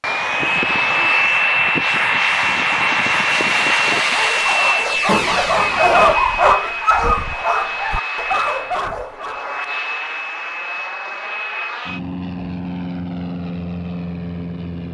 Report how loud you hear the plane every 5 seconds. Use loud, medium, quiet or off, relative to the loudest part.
loud, medium, medium.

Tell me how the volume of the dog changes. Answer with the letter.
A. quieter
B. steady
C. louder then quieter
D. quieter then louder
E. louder
C.